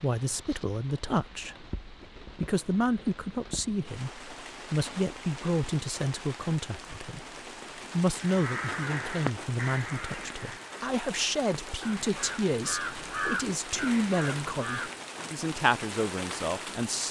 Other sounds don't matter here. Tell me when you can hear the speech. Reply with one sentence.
The speech can be heard from 0.0 to 1.6 s, from 2.4 to 7.2 s and from 7.9 to 17.0 s.